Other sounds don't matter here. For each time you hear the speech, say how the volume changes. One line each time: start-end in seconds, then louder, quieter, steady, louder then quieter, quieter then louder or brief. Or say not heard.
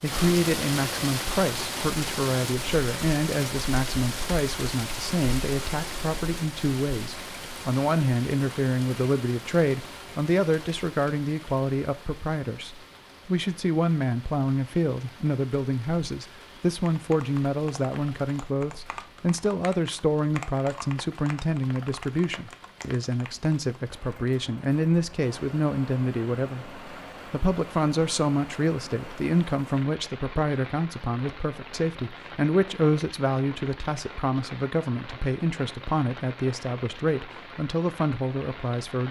0.0-39.0 steady.